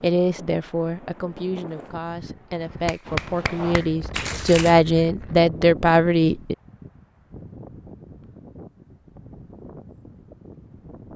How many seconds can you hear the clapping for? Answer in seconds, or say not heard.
2 s.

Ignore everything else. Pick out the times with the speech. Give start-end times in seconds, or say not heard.
0.0-6.5.